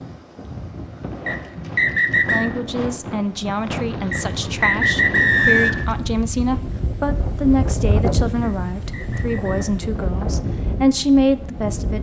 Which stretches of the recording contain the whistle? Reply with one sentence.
The whistle can be heard from 1.2 to 2.5 s, from 4.1 to 5.9 s and from 8.4 to 9.8 s.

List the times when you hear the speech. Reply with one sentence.
The speech can be heard from 2.3 to 11.9 s.